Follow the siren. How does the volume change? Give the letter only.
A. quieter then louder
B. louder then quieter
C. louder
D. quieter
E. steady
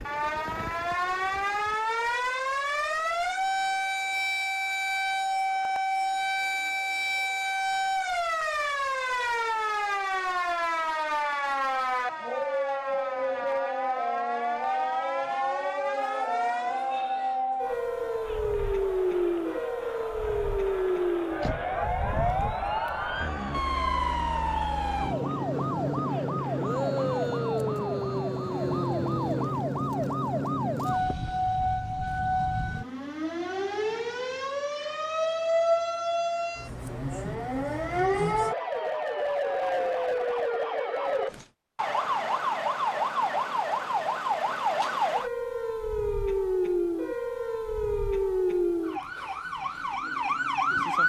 E.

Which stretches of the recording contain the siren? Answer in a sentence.
You can hear the siren from 0.0 to 51.0 s.